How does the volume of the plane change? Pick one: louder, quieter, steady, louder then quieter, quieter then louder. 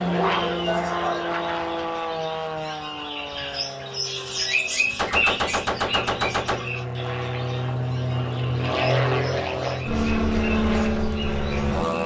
quieter then louder.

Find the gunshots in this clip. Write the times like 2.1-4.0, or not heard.
5.0-6.7.